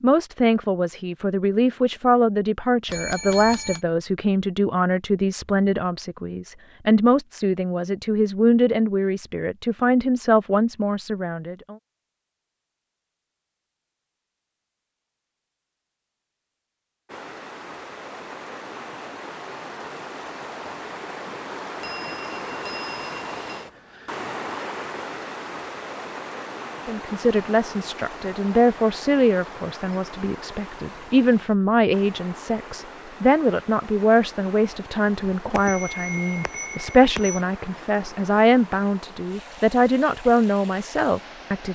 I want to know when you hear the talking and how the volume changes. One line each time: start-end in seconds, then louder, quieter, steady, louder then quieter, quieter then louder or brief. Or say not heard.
0.0-11.8 steady
26.9-41.7 steady.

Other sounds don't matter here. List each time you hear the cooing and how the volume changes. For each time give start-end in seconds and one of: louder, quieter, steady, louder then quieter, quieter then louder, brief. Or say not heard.
not heard.